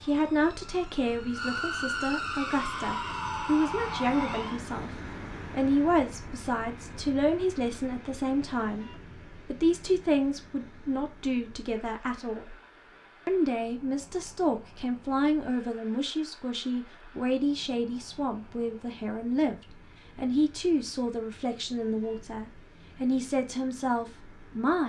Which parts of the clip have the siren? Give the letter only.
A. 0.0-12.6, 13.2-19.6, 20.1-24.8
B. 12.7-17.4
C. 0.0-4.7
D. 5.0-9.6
C.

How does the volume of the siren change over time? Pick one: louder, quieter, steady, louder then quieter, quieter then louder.
louder.